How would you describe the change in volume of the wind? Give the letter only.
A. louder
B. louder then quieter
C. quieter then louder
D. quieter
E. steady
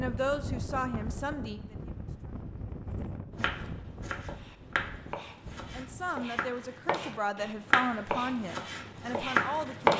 D.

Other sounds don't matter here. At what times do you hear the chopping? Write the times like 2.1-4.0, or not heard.
3.4-9.9.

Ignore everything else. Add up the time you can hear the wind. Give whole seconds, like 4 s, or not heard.
6 s.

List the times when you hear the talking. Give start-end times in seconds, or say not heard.
0.0-2.4, 5.7-9.9.